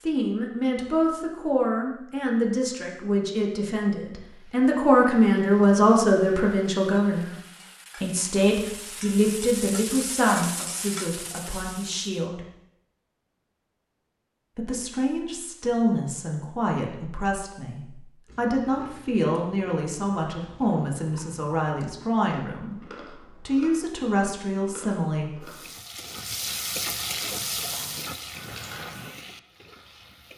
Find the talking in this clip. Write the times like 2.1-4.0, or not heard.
0.0-7.3, 8.0-12.4, 14.6-25.4.